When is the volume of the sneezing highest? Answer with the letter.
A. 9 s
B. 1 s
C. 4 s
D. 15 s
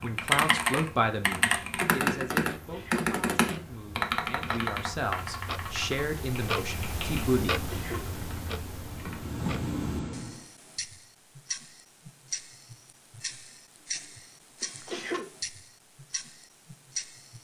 D.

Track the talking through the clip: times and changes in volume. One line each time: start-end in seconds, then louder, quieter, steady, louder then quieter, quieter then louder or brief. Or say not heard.
0.0-7.6 quieter then louder.